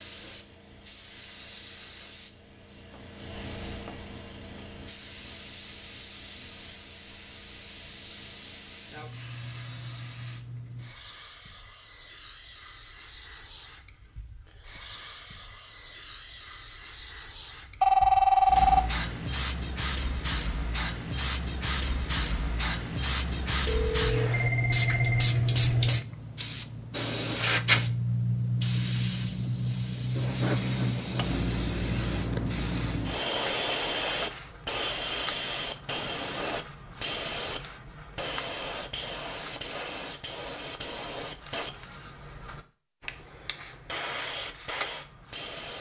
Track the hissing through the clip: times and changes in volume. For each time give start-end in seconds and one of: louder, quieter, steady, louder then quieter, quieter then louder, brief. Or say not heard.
0.0-45.7 louder then quieter.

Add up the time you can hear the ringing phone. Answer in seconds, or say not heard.
3 s.